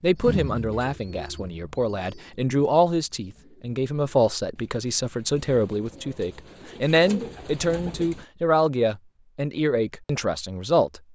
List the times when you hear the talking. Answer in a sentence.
The talking can be heard from 0.0 to 11.0 s.